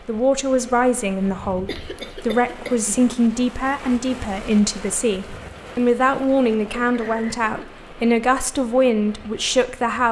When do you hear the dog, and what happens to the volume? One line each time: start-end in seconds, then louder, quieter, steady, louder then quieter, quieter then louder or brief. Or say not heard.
not heard.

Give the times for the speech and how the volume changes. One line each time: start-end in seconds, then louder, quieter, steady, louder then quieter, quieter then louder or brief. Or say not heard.
0.1-10.0 steady.